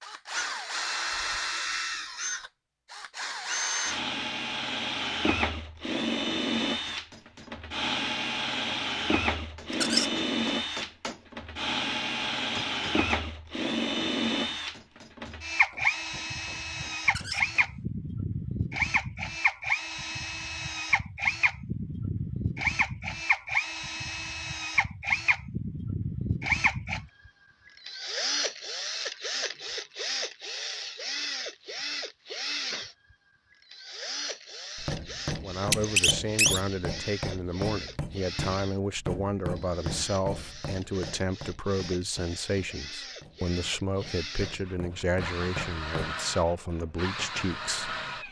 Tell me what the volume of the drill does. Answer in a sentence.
The loudness of the drill goes down.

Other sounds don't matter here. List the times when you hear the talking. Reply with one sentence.
The talking can be heard from 35.4 to 48.2 s.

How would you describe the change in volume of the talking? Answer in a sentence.
The loudness of the talking stays about the same.